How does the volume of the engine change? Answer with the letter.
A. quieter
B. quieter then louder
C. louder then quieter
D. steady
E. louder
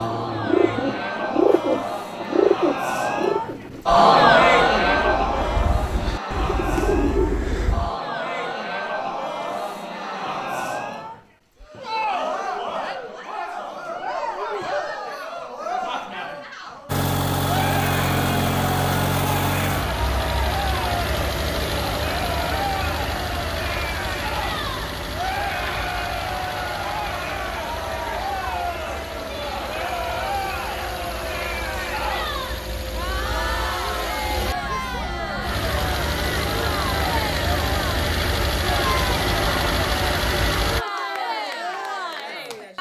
B.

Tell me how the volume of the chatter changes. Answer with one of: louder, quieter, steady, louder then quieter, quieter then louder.
quieter.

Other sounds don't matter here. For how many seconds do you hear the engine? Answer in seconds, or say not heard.
24 s.